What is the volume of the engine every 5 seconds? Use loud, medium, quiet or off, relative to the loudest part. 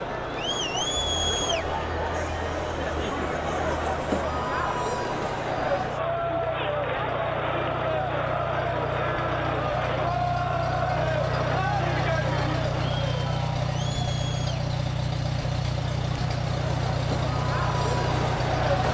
quiet, medium, loud, loud.